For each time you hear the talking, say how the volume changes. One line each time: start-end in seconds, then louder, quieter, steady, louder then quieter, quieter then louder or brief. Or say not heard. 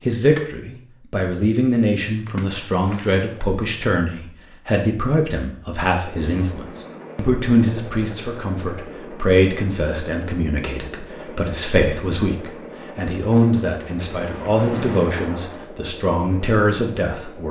0.1-17.4 steady.